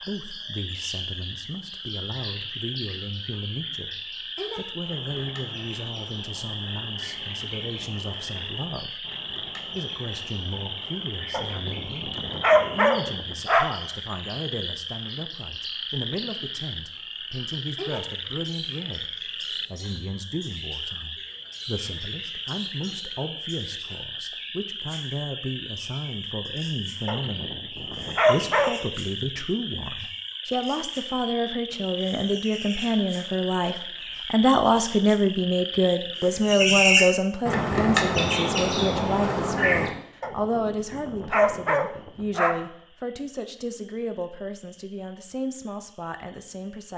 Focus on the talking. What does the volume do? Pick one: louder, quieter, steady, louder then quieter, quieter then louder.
louder then quieter.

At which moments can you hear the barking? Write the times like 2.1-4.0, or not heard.
11.3-13.7, 27.1-28.8, 40.2-42.5.